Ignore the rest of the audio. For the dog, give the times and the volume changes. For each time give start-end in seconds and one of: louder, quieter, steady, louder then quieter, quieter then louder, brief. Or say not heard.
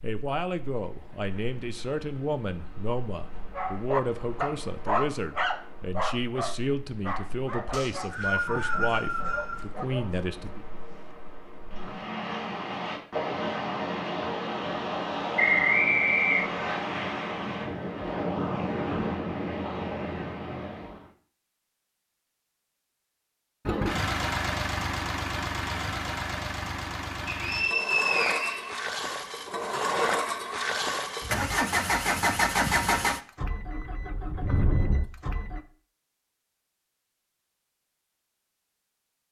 3.5-11.2 quieter.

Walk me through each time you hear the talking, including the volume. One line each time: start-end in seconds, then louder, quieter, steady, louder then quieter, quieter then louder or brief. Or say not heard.
0.0-10.7 steady.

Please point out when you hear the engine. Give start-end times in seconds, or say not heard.
23.6-35.6.